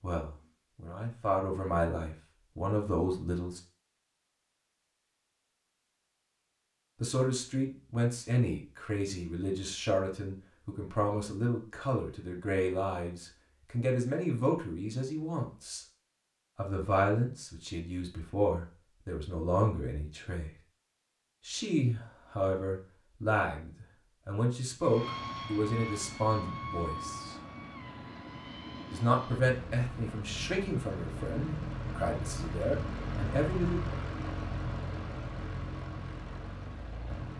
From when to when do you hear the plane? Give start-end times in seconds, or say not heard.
24.8-37.3.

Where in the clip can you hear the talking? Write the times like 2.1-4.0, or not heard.
0.0-3.6, 7.0-15.8, 16.6-20.6, 21.4-27.4, 28.9-33.8.